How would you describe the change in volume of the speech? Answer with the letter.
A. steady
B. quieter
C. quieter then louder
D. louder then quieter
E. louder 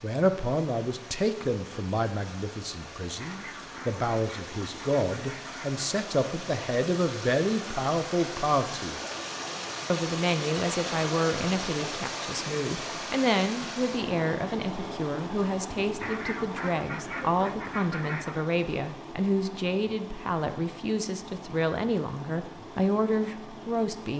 A.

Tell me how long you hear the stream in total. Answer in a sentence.
The stream can be heard for 24 seconds in total.